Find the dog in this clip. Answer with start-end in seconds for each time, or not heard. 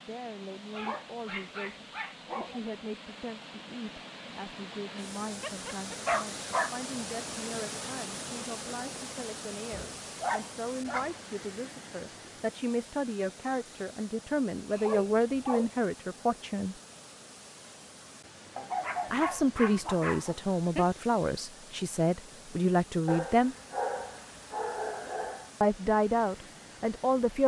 0.7-2.6, 5.4-6.8, 9.7-11.2, 14.7-15.7, 18.6-20.9, 23.1-25.5.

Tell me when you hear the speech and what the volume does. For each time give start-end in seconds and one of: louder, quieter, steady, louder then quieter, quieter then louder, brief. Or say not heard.
0.0-16.8 louder
19.1-23.6 steady
25.6-27.4 brief.